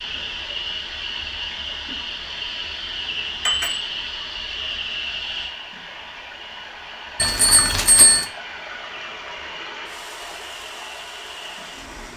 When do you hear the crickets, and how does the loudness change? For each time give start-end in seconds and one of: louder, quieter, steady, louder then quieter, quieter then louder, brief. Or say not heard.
0.0-12.1 quieter.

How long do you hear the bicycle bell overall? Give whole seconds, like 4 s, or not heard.
2 s.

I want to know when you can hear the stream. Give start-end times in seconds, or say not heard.
0.0-12.1.